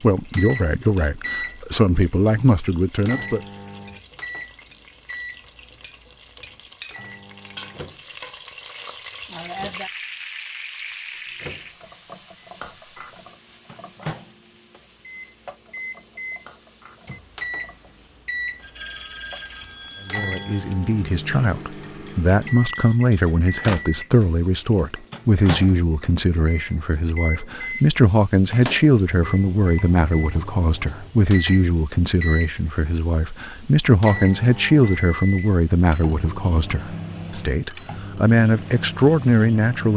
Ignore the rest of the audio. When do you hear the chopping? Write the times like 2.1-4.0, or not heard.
not heard.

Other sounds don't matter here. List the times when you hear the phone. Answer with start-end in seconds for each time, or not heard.
18.6-20.6.